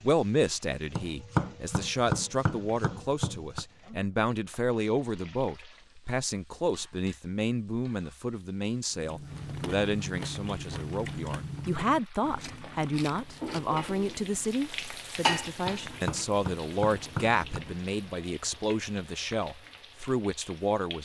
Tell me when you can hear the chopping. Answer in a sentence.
The chopping can be heard from 0.9 to 3.6 s and from 15.7 to 17.6 s.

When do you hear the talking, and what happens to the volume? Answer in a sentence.
You can hear the talking from 0.0 to 21.0 s, at a steady volume.